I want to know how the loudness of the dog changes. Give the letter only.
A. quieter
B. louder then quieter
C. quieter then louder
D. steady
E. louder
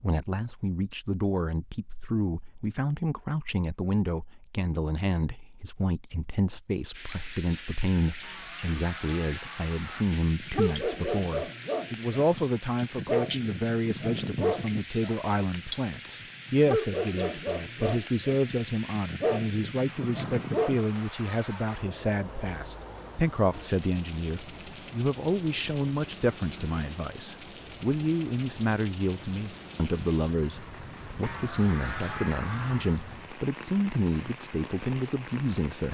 C.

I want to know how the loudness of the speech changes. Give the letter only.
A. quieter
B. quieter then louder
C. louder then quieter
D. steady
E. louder
D.